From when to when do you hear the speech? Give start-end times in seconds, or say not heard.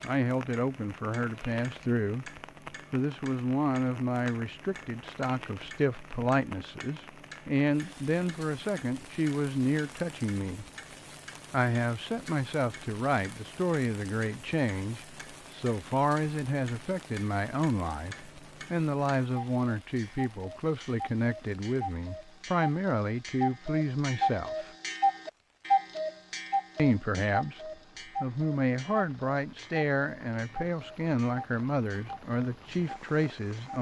0.0-2.3, 2.9-10.7, 11.5-24.7, 26.8-33.7.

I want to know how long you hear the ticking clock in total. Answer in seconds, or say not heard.
34 s.